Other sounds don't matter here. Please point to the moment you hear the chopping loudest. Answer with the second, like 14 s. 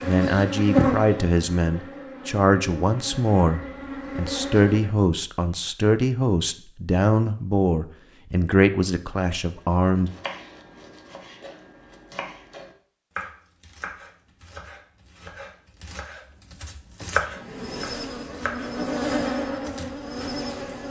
17 s.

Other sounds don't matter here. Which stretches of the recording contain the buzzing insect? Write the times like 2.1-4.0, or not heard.
0.0-5.0, 17.1-20.8.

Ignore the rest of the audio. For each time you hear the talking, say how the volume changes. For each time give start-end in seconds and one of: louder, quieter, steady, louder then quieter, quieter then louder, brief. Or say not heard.
0.0-10.1 steady.